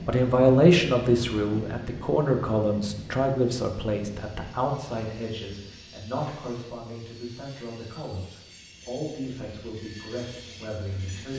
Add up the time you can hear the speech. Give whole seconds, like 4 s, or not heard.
11 s.